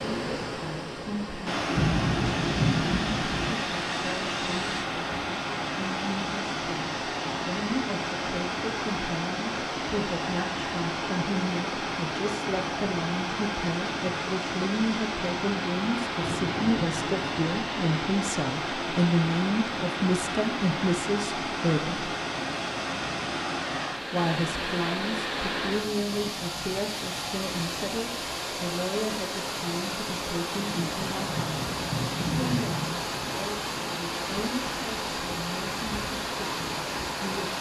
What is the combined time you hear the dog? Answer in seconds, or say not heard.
not heard.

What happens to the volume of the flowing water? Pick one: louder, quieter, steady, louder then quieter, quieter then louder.
steady.